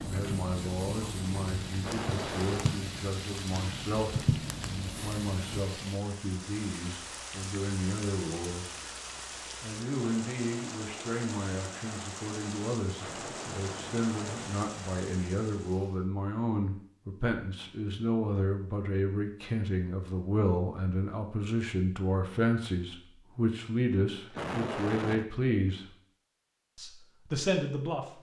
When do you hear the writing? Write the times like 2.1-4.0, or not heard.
0.0-5.7.